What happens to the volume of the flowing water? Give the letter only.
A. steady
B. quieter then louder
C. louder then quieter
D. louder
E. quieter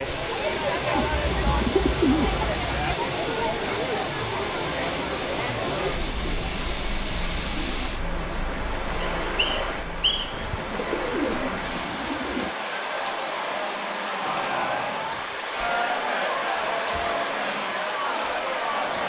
A.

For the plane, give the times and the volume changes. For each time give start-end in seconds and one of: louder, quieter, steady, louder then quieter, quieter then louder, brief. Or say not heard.
not heard.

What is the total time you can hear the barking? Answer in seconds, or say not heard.
not heard.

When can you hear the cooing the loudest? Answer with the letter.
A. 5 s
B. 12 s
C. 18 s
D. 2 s
D.